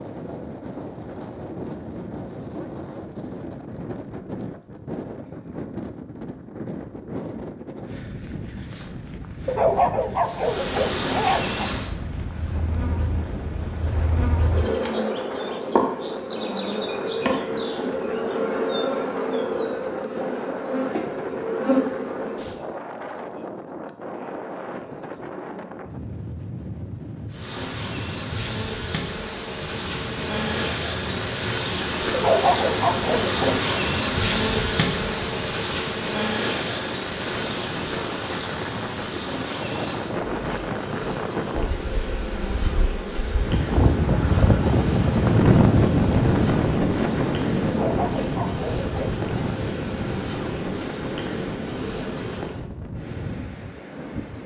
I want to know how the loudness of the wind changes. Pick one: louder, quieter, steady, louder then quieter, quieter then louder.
louder.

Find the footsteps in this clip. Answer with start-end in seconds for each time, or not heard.
not heard.